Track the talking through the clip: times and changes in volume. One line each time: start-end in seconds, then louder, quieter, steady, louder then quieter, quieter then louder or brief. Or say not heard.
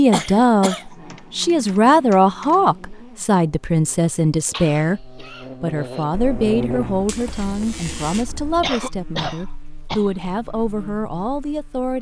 0.0-11.9 quieter.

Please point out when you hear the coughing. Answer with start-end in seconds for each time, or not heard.
0.1-0.9, 4.5-6.0, 8.6-10.1.